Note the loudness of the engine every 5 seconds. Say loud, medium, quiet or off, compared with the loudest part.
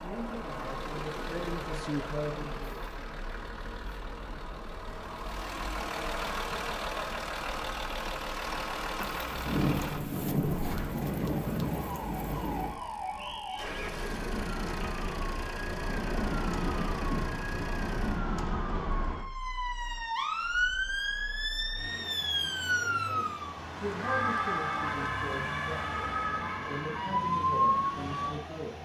medium, loud, medium, medium, medium, medium.